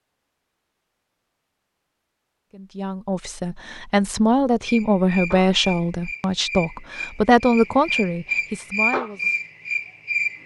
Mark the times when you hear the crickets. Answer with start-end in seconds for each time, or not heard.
4.7-10.4.